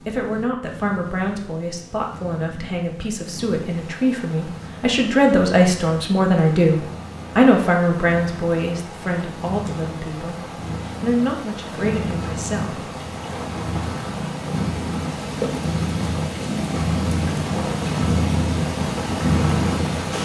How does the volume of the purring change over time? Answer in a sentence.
The volume of the purring goes up.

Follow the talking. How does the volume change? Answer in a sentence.
The volume of the talking goes up, then down.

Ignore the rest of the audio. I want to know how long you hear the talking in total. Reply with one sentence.
The talking can be heard for 13 seconds in total.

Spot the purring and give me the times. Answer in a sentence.
You can hear the purring from 0.0 to 20.1 s.